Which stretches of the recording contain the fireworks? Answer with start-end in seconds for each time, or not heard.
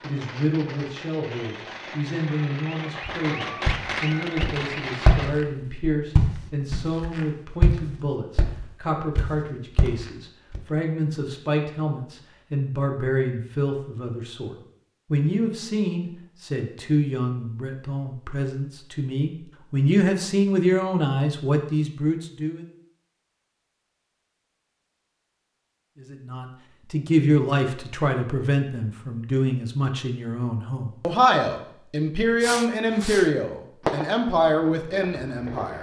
0.0-5.3, 32.4-35.7.